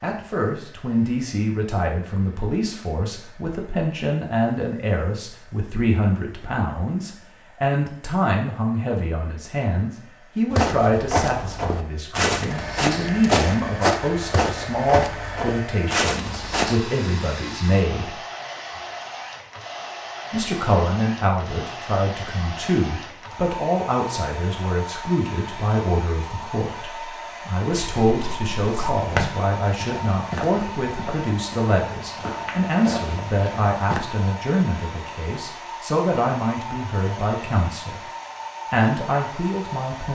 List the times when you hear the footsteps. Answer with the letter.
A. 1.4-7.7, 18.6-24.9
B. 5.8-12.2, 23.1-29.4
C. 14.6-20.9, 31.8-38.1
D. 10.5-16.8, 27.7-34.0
D.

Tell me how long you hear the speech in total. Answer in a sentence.
The speech can be heard for 37 seconds in total.